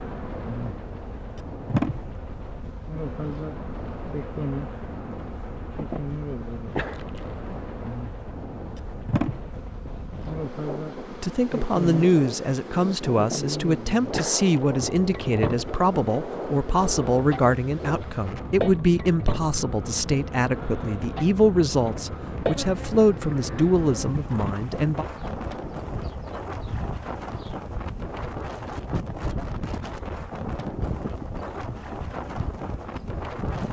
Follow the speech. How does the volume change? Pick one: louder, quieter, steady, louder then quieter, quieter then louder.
steady.